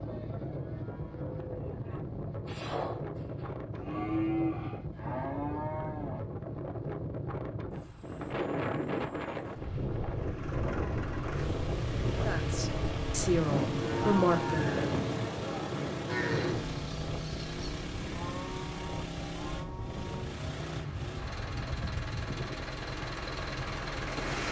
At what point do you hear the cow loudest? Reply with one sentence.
The volume of the cow peaks at 4 seconds.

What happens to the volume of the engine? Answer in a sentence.
The volume of the engine stays about the same.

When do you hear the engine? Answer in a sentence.
You can hear the engine from 10.1 to 24.4 s.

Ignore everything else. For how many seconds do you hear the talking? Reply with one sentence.
You can hear the talking for 2 seconds altogether.